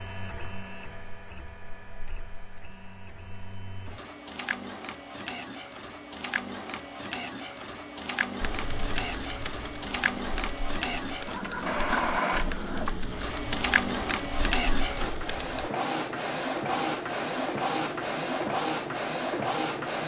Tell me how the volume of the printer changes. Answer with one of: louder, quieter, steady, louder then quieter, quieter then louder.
louder.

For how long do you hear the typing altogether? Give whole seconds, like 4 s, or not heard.
7 s.